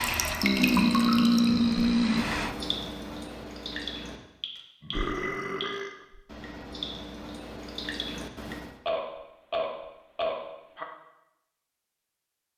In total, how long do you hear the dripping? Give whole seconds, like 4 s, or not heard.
9 s.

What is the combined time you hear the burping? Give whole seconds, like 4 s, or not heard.
5 s.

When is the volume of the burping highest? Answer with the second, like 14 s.
1 s.